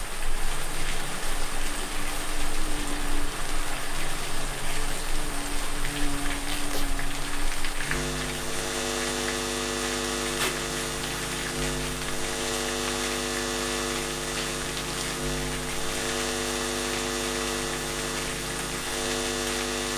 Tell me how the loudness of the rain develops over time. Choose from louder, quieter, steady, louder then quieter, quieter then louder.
steady.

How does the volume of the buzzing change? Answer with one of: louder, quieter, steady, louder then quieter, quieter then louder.
louder.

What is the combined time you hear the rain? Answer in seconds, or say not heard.
20 s.